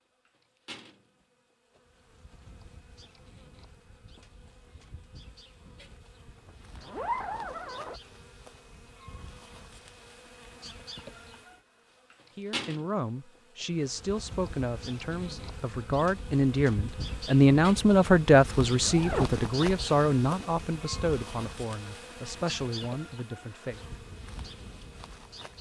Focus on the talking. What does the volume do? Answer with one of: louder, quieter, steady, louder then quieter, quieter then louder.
louder then quieter.